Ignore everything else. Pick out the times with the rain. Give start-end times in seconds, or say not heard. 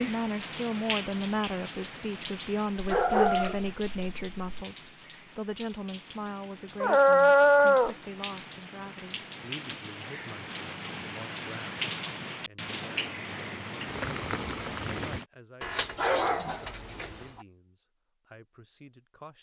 0.0-15.2.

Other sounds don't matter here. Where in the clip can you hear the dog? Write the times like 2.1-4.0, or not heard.
2.8-4.7, 6.8-8.0, 15.6-17.1.